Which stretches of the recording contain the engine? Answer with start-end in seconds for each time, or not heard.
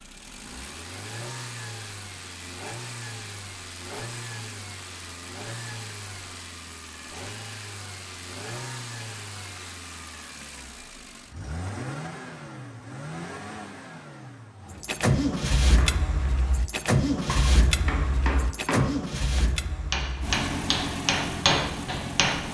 0.0-22.4.